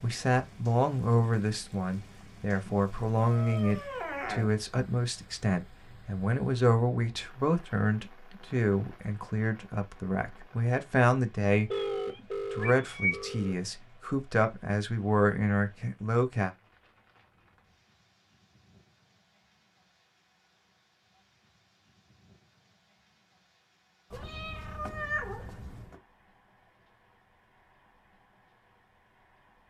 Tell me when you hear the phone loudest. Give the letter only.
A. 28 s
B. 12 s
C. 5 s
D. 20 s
B.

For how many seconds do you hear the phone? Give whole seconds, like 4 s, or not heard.
2 s.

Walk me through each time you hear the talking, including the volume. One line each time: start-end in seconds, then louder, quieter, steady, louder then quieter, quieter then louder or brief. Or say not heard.
0.0-16.5 steady.